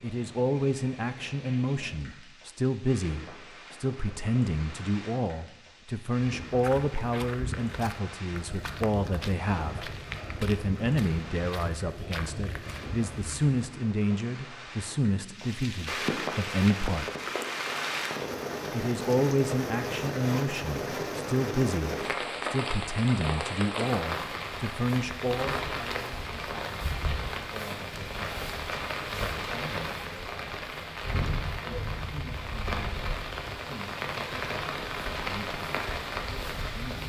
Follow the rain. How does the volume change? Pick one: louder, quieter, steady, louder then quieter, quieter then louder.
louder.